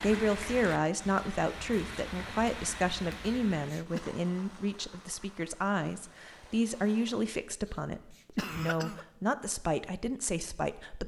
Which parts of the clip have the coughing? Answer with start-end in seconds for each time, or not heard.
3.2-4.0, 8.3-9.1.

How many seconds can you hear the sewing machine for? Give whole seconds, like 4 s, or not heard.
not heard.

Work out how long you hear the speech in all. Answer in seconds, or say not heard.
11 s.